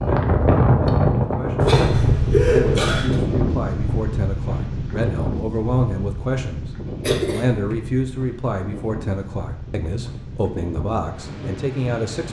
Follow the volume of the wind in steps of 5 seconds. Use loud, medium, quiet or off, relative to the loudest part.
loud, medium, quiet.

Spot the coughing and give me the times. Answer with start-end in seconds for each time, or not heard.
1.6-3.1, 7.0-7.8.